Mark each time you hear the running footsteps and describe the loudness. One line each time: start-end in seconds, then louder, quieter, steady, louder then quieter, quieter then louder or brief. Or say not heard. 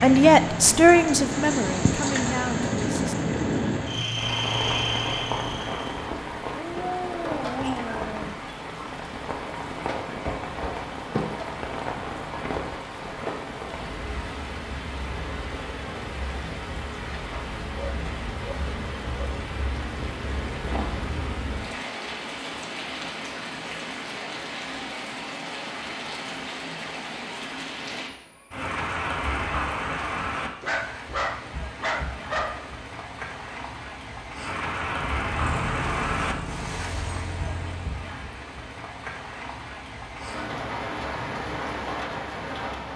not heard.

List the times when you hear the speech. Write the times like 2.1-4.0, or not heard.
0.0-3.2.